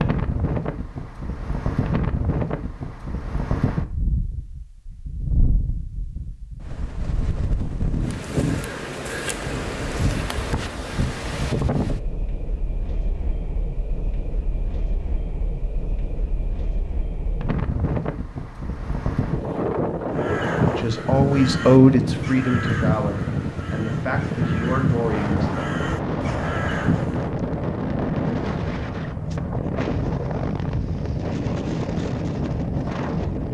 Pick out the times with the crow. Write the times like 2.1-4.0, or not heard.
20.1-27.3.